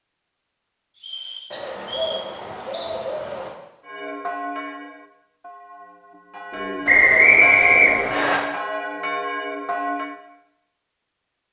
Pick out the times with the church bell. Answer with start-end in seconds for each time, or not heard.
3.9-10.2.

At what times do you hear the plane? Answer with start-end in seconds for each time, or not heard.
not heard.